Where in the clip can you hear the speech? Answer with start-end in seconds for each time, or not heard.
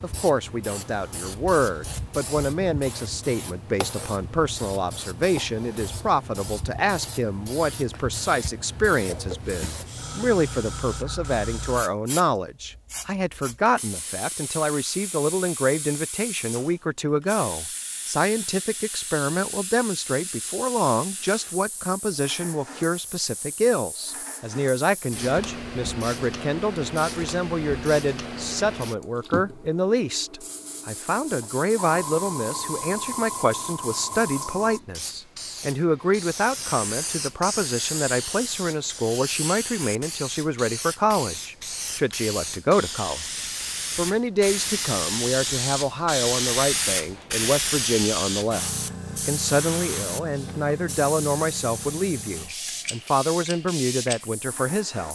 0.0-48.6, 49.2-55.0.